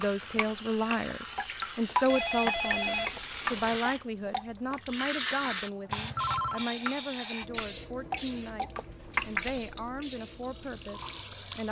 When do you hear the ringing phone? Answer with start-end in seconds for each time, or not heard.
2.0-3.8, 5.8-6.7.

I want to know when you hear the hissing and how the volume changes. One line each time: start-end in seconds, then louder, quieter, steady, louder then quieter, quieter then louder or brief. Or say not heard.
0.0-11.6 louder then quieter.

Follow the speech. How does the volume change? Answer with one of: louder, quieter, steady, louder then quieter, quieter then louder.
quieter.